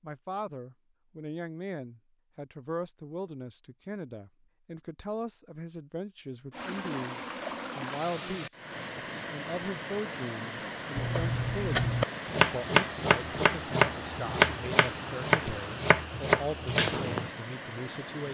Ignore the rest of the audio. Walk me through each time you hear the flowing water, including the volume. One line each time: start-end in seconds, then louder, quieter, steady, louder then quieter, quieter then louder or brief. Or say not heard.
6.5-18.2 steady.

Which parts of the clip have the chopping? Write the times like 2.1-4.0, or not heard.
10.9-16.9.